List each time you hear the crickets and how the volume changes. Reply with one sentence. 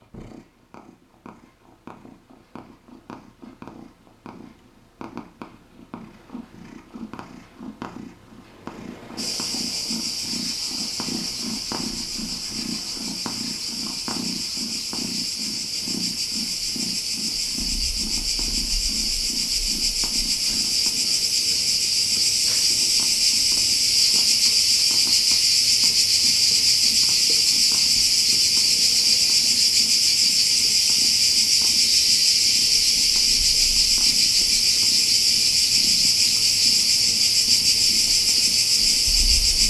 The crickets can be heard from 9.2 to 39.6 s, getting louder.